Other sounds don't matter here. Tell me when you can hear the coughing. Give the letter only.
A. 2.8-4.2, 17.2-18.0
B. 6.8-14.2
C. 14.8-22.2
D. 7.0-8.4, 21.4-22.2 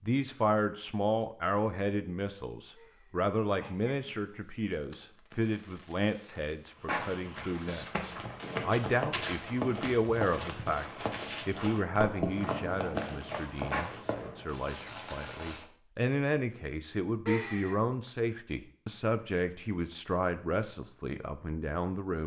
A.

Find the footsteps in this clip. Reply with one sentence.
The footsteps can be heard from 6.8 to 14.2 s.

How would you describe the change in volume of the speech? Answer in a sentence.
The loudness of the speech stays about the same.